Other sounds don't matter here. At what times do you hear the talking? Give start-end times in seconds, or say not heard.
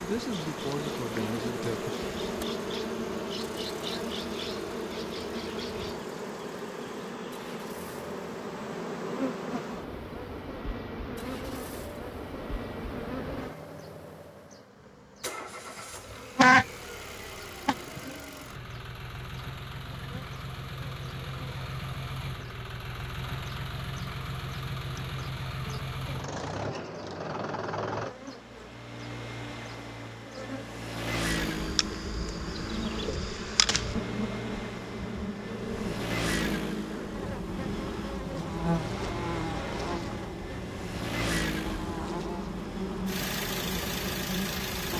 0.0-1.9.